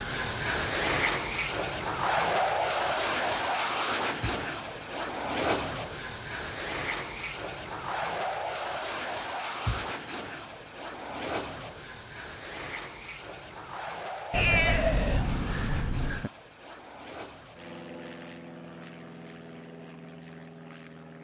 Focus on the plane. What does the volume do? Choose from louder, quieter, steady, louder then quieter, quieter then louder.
quieter.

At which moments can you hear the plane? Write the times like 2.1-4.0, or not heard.
0.0-21.1.